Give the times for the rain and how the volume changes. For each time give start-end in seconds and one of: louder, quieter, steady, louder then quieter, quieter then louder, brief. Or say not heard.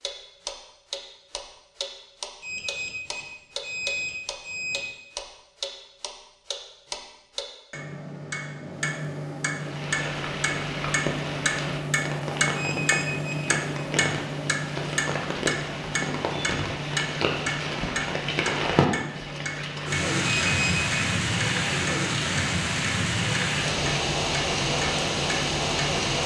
9.5-26.2 louder.